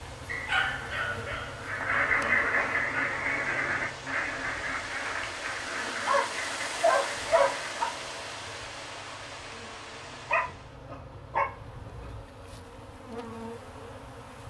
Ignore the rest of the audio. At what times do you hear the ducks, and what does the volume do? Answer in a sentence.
You can hear the ducks from 1.6 to 7.8 s, getting quieter.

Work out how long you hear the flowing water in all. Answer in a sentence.
You can hear the flowing water for 11 seconds altogether.